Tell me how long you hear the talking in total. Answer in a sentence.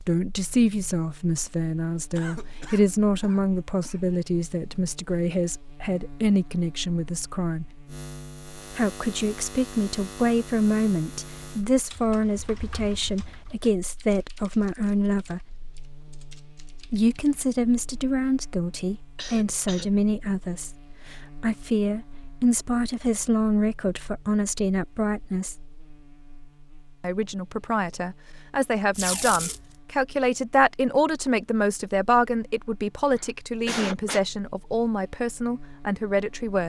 The talking can be heard for 33 seconds in total.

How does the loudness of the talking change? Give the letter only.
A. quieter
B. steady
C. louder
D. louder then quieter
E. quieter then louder
B.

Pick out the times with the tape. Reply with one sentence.
The tape can be heard from 28.9 to 29.6 s.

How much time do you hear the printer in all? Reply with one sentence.
You can't hear the printer here.